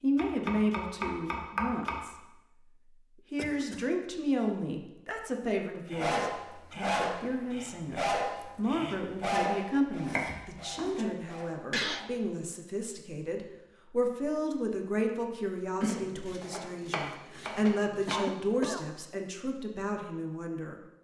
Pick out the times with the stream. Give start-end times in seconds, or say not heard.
not heard.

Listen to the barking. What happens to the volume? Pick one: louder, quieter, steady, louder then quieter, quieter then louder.
quieter.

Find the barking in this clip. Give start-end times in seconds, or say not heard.
5.8-12.1.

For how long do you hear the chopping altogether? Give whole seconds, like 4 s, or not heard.
5 s.